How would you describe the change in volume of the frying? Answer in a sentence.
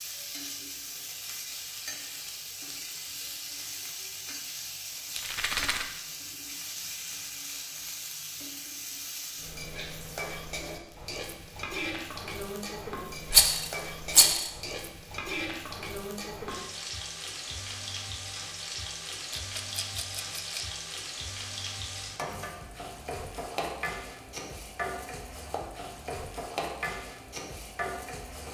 The volume of the frying stays about the same.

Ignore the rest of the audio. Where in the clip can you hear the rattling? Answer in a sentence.
You can hear the rattling from 5.2 to 5.8 s, from 13.3 to 14.5 s and from 19.3 to 20.6 s.